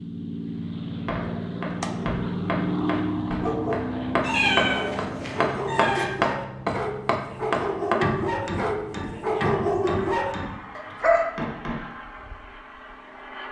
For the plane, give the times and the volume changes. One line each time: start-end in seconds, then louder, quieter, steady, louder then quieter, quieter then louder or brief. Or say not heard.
0.0-13.4 quieter.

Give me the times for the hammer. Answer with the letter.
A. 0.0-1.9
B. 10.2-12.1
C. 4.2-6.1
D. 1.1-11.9
D.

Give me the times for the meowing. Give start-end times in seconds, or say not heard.
4.2-6.1.